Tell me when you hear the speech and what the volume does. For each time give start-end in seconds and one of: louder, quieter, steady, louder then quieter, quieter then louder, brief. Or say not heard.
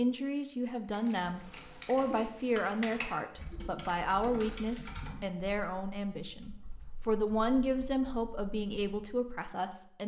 0.0-10.0 steady.